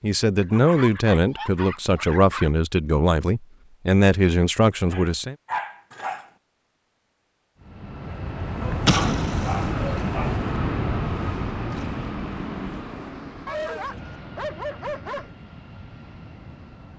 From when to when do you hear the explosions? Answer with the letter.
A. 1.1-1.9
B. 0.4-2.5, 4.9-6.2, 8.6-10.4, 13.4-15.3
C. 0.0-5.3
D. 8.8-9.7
D.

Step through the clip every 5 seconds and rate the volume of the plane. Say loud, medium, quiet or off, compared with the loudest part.
off, loud, loud, quiet.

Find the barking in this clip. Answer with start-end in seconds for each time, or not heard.
0.4-2.5, 4.9-6.2, 8.6-10.4, 13.4-15.3.